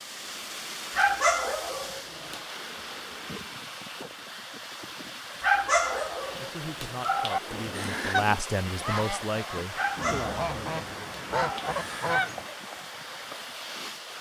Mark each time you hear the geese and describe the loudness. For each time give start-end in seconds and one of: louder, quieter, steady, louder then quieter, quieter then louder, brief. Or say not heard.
7.5-12.4 quieter then louder.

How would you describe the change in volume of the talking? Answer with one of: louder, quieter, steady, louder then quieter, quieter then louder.
louder then quieter.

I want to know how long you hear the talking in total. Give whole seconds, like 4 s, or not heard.
5 s.